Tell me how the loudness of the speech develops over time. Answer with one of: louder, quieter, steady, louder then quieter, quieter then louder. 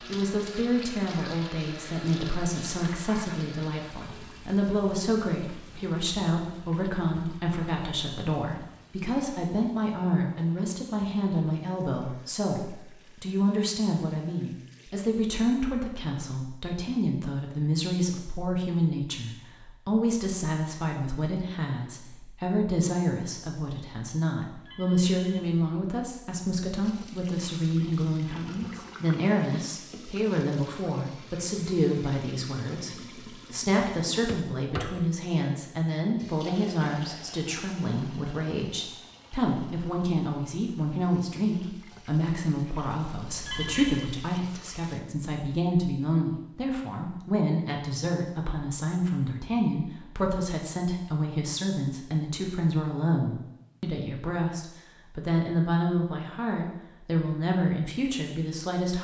steady.